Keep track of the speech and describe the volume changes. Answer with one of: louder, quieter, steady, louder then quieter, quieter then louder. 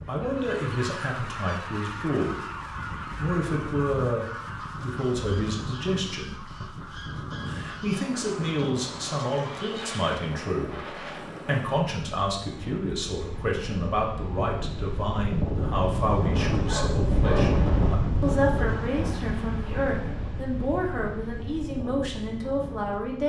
steady.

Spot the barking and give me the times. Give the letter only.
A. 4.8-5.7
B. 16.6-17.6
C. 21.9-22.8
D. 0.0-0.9
B.